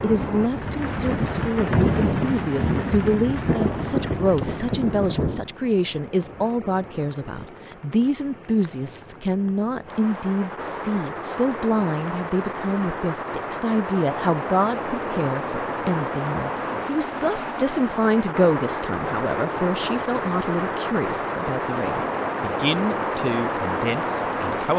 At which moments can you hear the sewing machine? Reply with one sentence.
The sewing machine can't be heard in this clip.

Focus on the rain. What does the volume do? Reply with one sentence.
The volume of the rain goes down, then up.